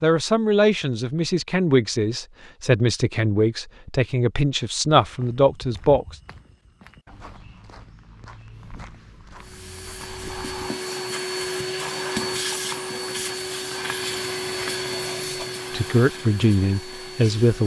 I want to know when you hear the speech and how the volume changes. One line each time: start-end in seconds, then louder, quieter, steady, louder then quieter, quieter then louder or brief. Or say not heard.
0.0-6.2 steady
15.7-17.6 brief.